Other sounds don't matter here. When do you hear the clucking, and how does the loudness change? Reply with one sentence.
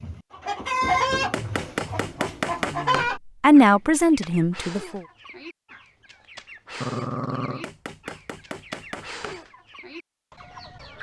You can hear the clucking from 0.0 to 10.9 s, getting quieter.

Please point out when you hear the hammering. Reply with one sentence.
You can hear the hammering from 1.3 to 3.1 s and from 7.6 to 9.4 s.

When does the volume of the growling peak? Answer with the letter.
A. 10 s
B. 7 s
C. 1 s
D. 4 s
B.